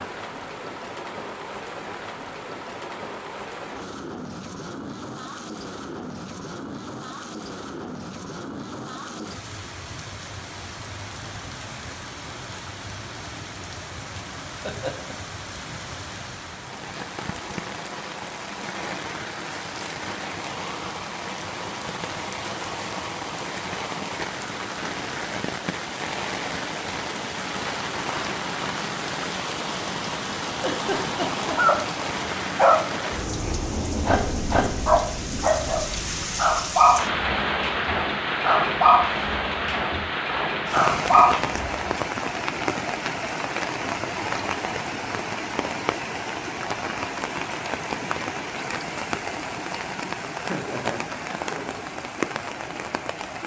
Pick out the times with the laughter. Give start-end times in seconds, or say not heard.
14.4-15.2, 30.6-32.0, 50.5-51.6.